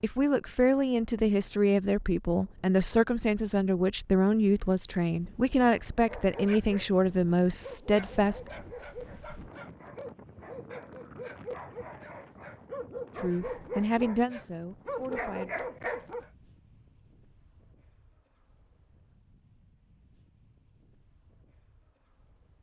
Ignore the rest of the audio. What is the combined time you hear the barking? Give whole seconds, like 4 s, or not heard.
10 s.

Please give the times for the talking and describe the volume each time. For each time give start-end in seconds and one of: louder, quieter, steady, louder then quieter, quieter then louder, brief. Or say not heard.
0.0-8.5 steady
13.2-15.6 brief.